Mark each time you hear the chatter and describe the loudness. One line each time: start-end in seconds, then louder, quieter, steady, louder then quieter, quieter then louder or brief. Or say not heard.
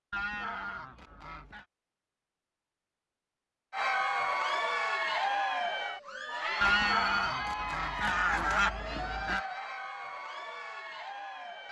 3.7-11.6 quieter.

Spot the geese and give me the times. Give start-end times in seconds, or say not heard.
0.1-1.6, 6.6-9.4.